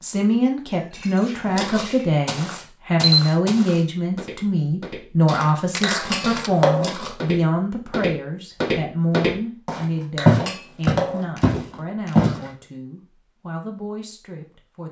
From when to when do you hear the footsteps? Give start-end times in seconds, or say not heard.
1.4-12.4.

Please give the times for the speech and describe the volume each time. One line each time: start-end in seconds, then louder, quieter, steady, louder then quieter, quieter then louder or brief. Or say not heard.
0.0-14.8 quieter.